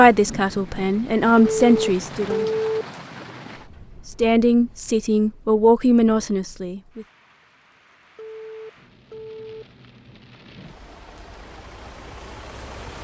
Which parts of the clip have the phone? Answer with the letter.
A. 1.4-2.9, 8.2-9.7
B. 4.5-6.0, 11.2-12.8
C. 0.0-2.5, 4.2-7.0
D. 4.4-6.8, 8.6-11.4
A.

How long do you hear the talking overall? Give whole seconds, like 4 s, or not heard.
5 s.